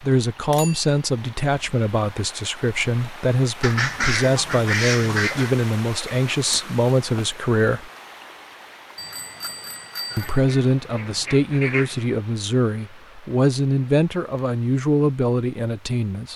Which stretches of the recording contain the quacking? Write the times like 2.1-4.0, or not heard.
3.6-5.5, 10.1-12.1.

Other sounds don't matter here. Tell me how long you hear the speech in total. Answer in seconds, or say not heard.
14 s.